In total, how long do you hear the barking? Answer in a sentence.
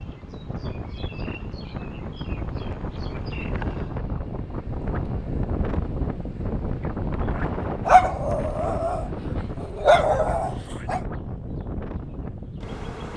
You can hear the barking for 3 seconds altogether.